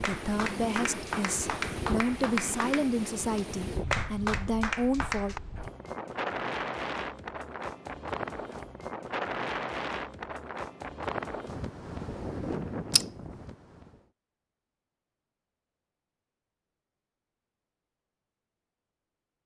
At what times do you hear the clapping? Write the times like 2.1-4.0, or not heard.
0.0-5.4.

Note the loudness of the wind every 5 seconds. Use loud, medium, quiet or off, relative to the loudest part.
loud, loud, loud, off.